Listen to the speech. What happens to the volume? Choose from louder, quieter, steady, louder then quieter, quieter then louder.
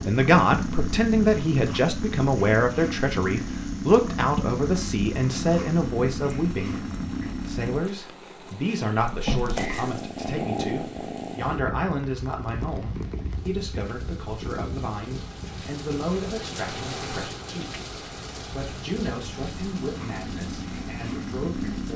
quieter.